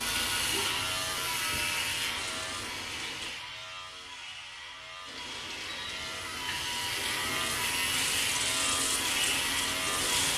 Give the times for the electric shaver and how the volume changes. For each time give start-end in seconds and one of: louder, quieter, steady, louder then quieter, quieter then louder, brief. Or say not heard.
0.0-10.3 quieter then louder.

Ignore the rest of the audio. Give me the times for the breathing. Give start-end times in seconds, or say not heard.
not heard.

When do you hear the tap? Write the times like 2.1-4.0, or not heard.
0.0-3.4, 5.0-10.3.